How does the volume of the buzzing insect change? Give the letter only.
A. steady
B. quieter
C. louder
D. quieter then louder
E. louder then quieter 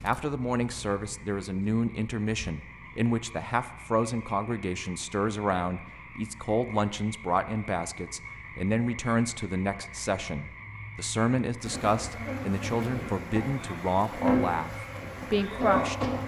C.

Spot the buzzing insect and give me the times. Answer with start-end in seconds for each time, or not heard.
11.6-16.2.